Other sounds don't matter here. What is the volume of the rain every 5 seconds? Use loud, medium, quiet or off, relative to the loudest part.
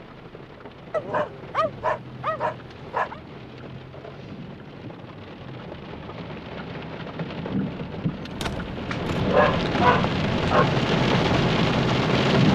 quiet, medium, loud.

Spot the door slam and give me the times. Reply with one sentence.
The door slam can be heard from 8.2 to 8.8 s.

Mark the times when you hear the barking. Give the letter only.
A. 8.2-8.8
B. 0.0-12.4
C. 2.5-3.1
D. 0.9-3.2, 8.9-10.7
D.